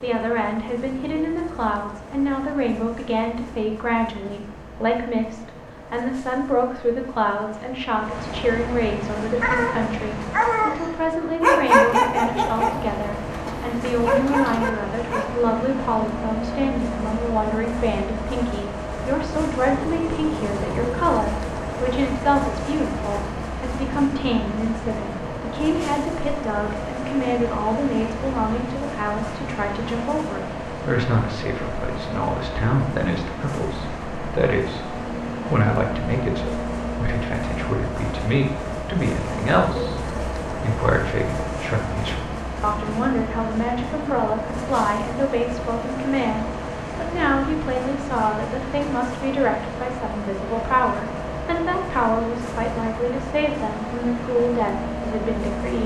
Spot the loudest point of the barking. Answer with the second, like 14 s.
12 s.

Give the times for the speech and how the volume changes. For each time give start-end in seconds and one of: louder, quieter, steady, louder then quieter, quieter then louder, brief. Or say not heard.
0.0-55.8 steady.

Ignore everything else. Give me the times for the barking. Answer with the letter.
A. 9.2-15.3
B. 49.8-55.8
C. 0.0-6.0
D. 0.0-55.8
A.